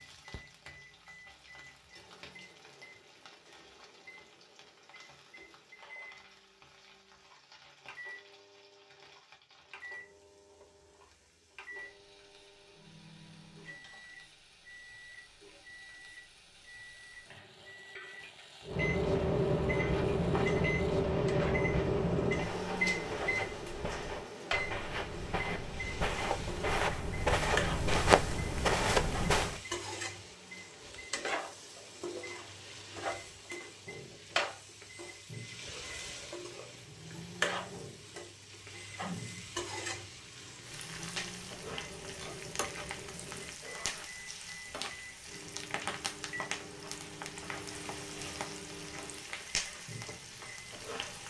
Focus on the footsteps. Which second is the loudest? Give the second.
28 s.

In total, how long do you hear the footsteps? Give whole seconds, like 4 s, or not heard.
10 s.